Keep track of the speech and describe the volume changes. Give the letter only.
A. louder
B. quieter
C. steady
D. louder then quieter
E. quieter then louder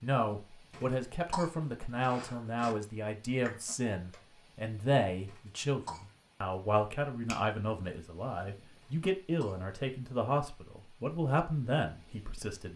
C.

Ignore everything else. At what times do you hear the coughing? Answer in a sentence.
The coughing can be heard from 0.7 to 2.8 s, from 5.2 to 6.0 s and from 8.8 to 9.6 s.